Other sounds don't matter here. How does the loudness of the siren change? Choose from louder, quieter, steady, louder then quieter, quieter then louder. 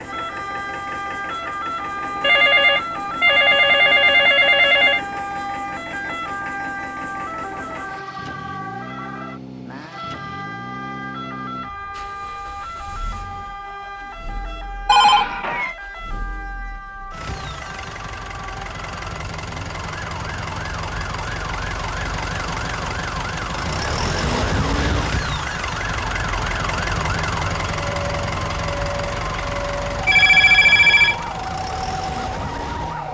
quieter then louder.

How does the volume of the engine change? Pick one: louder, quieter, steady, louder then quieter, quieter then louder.
louder.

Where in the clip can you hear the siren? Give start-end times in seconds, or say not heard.
0.0-33.0.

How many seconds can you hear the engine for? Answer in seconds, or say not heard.
33 s.